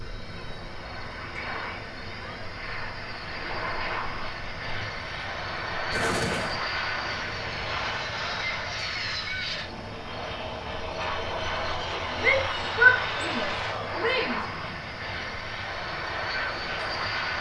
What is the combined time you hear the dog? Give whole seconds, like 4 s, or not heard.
not heard.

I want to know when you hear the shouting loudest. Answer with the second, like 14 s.
13 s.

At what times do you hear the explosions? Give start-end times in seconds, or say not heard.
5.9-6.5.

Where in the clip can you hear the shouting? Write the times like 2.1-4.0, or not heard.
12.2-14.4.